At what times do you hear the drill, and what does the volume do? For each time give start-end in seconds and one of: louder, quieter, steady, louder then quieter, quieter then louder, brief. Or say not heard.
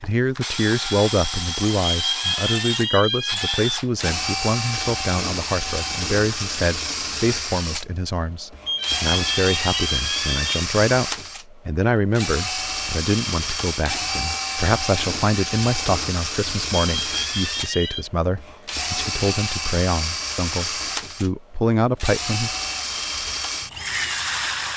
0.0-24.7 steady.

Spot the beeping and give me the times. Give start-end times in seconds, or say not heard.
1.8-3.7, 8.7-10.7, 16.9-18.1.